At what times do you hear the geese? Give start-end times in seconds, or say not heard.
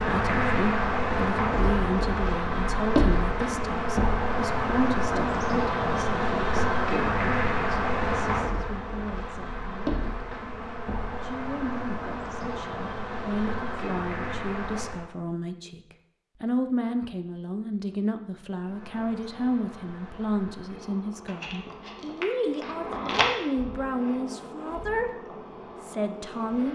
not heard.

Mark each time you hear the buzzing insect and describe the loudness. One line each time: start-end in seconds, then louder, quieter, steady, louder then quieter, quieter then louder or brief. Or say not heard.
0.0-15.1 quieter
18.6-26.7 louder then quieter.